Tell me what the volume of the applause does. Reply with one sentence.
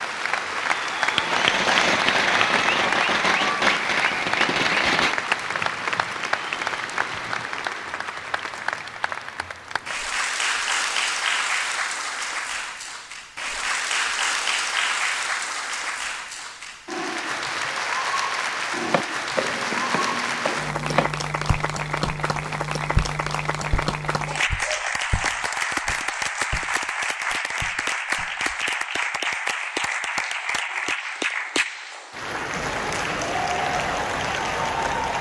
The volume of the applause stays about the same.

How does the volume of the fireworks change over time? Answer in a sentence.
The volume of the fireworks goes down.